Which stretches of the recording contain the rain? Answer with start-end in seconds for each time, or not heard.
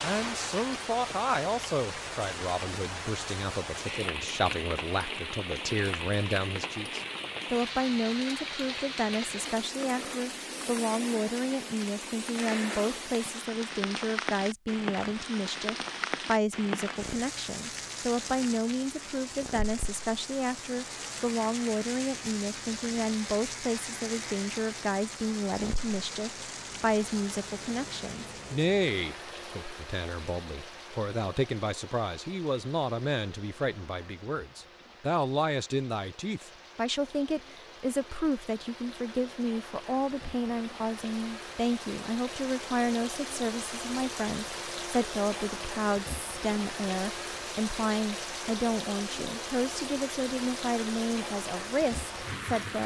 0.0-52.8.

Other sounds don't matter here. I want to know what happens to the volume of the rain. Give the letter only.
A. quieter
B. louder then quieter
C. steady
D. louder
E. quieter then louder
E.